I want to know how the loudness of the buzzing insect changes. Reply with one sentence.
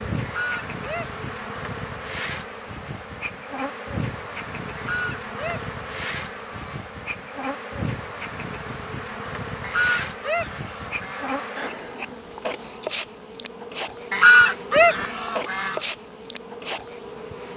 The volume of the buzzing insect stays about the same.